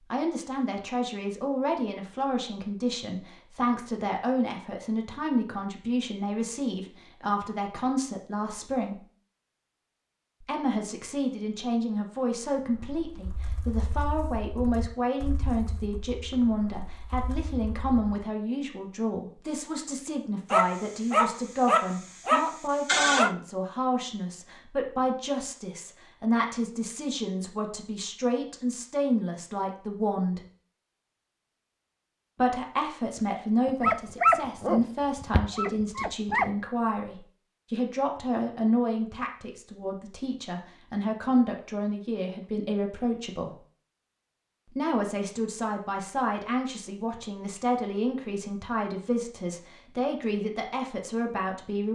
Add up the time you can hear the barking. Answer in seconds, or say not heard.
6 s.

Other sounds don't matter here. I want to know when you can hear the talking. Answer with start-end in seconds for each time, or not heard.
0.1-9.0, 10.4-30.4, 32.4-43.5, 44.8-51.8.